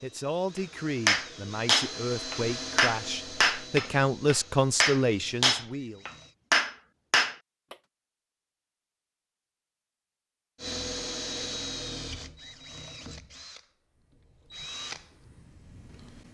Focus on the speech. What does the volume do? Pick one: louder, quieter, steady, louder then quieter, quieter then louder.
louder.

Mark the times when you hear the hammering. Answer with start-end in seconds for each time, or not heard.
1.1-7.8.